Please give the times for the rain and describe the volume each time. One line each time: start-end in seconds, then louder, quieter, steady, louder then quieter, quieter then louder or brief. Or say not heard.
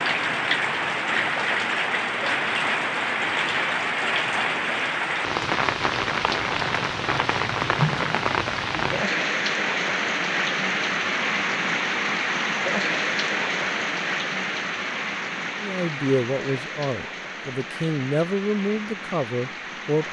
0.0-20.0 quieter.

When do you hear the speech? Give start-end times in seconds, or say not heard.
15.6-20.0.